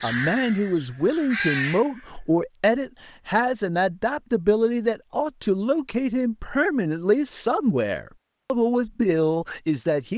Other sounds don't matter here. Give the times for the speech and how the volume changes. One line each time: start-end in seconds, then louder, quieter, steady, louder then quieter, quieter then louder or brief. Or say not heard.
0.0-10.1 steady.